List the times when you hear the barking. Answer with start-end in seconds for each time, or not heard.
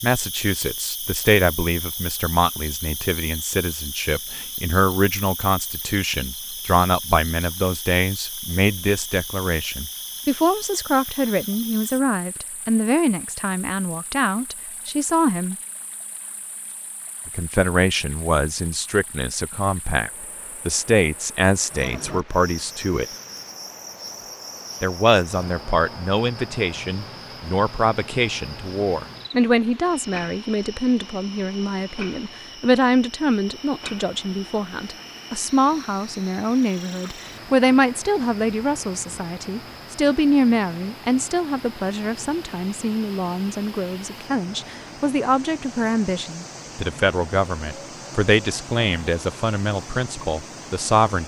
not heard.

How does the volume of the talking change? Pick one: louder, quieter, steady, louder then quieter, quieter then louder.
steady.